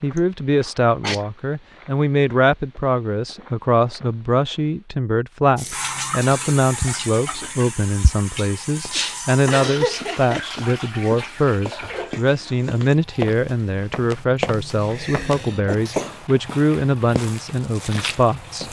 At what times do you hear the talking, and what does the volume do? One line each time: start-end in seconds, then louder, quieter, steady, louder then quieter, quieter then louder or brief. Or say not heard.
0.0-18.6 steady.